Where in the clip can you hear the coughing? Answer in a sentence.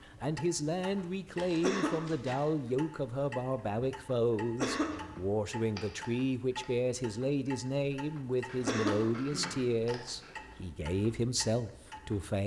The coughing can be heard from 1.6 to 2.4 s, from 4.5 to 5.1 s and from 8.6 to 9.7 s.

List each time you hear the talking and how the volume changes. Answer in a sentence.
The talking can be heard from 0.0 to 12.4 s, at a steady volume.